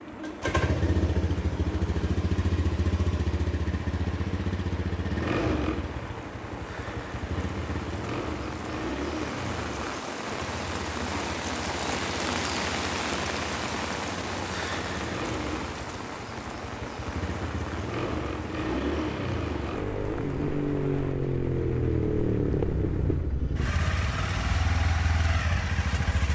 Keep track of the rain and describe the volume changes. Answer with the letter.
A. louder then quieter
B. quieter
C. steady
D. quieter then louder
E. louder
A.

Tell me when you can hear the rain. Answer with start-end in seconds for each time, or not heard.
0.0-21.1.